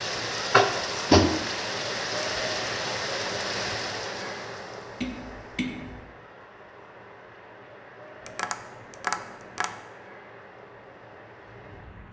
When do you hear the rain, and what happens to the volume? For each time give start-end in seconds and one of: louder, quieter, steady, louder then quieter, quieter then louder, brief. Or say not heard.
0.0-12.0 quieter.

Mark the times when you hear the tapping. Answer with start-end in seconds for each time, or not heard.
0.5-1.4, 5.0-6.0, 8.2-9.7.